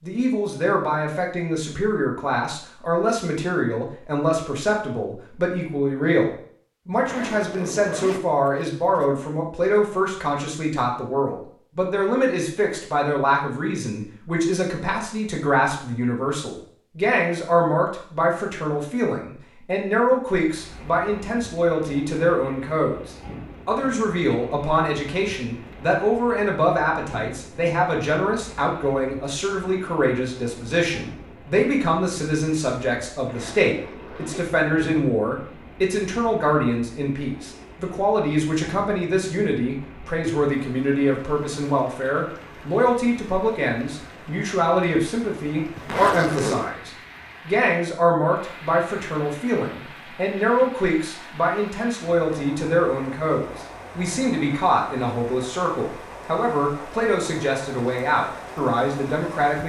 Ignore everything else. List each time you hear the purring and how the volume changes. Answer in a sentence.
The purring can't be heard in this clip.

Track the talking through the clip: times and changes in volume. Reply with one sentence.
You can hear the talking from 0.0 to 59.6 s, at a steady volume.